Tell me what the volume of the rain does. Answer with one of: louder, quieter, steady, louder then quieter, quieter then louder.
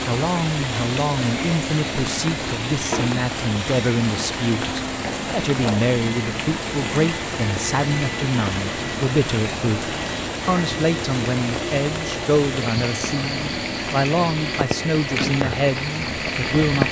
steady.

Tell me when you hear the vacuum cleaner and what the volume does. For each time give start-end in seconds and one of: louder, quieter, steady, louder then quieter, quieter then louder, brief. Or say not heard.
0.0-16.8 steady.